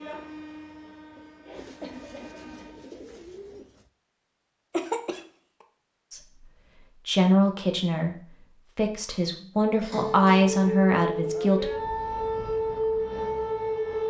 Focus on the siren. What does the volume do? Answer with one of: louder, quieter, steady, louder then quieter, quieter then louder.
steady.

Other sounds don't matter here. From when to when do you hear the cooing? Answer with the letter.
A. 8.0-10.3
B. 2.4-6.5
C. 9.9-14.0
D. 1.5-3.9
D.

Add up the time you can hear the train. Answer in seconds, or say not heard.
3 s.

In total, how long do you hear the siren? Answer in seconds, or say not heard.
4 s.